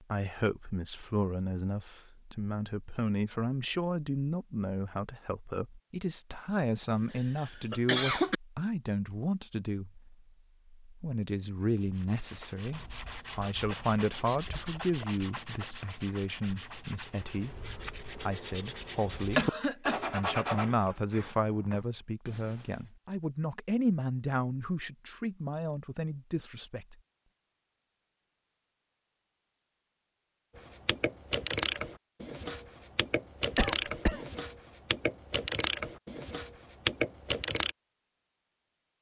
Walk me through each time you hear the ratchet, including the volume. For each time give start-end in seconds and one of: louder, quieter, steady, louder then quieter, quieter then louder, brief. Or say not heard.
30.9-37.8 steady.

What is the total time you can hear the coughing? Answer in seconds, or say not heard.
3 s.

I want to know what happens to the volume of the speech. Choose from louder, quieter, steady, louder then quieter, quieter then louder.
steady.